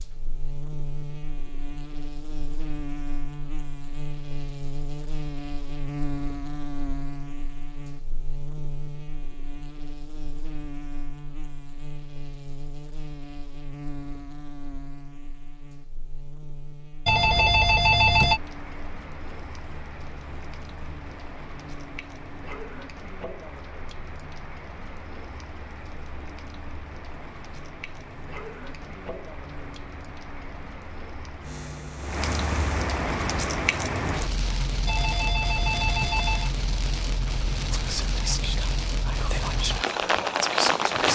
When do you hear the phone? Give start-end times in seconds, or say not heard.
17.1-18.4, 34.9-36.5.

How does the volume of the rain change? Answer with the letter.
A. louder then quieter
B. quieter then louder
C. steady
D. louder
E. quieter
D.